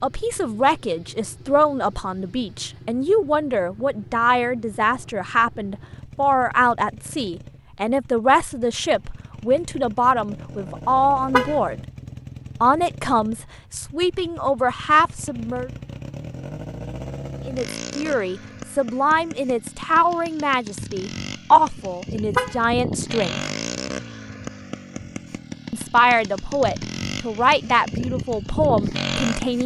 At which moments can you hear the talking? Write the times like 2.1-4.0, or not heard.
0.0-11.8, 12.6-15.7, 17.4-23.4, 25.7-29.6.